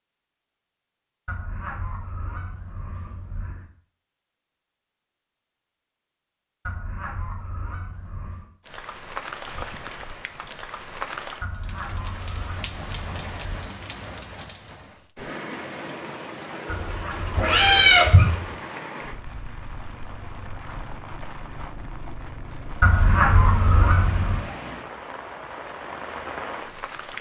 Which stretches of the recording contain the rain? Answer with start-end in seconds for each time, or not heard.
8.6-27.1.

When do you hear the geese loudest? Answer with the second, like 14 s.
23 s.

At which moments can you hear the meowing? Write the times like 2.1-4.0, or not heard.
17.4-18.3.